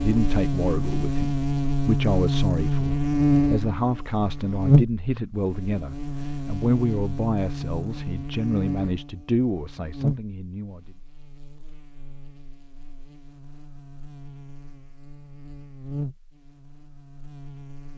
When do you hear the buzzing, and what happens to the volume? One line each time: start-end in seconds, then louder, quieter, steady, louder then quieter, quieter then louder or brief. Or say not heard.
0.0-17.9 quieter then louder.